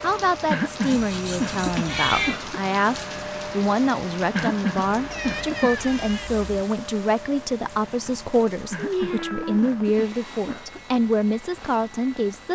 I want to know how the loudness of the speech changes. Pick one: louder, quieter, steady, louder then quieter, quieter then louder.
steady.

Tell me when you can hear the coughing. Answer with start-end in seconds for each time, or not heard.
0.5-2.5, 4.3-5.7, 8.7-10.8.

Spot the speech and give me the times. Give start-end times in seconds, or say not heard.
0.0-12.5.